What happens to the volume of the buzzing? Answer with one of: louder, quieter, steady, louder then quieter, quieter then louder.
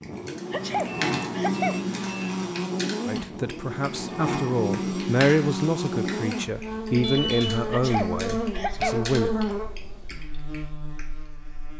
steady.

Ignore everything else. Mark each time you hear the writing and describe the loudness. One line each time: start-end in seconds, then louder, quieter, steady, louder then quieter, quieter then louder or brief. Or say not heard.
not heard.